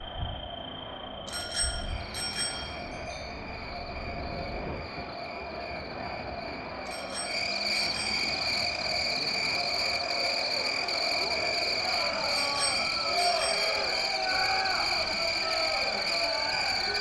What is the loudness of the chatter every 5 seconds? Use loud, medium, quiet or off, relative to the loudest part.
medium, medium, loud, loud.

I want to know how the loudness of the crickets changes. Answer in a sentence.
The volume of the crickets goes up.